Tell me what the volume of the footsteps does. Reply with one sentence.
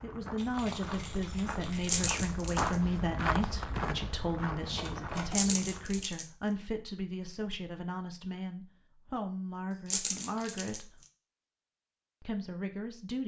The volume of the footsteps goes up, then down.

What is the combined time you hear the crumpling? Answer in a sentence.
The crumpling can be heard for 3 seconds in total.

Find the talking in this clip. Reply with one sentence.
The talking can be heard from 0.0 to 11.0 s and from 12.2 to 13.2 s.